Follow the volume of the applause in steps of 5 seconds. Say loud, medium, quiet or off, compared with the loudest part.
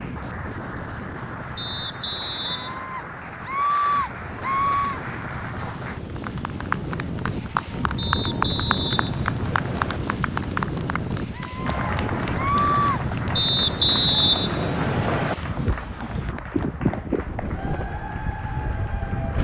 medium, loud, loud, medium.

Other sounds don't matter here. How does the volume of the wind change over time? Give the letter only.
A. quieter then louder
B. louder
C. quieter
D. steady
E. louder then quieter
B.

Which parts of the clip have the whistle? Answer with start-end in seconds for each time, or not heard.
1.6-2.9, 8.0-10.0, 13.3-15.3.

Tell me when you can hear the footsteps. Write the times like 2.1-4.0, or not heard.
not heard.